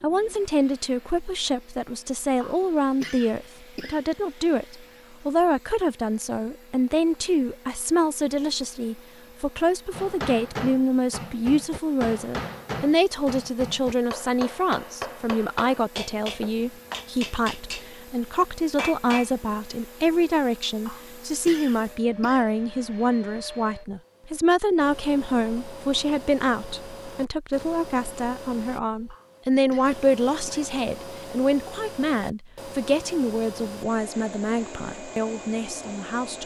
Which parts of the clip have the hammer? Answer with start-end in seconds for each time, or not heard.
9.9-19.3.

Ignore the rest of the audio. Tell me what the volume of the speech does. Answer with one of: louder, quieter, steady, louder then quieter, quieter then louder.
steady.